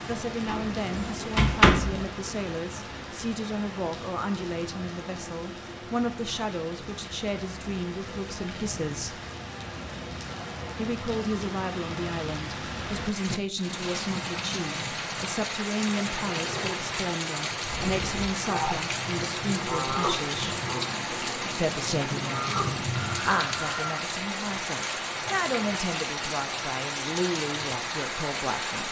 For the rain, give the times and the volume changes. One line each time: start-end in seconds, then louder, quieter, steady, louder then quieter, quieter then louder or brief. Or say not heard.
0.0-28.8 louder.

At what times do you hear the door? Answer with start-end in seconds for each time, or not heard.
0.5-2.0.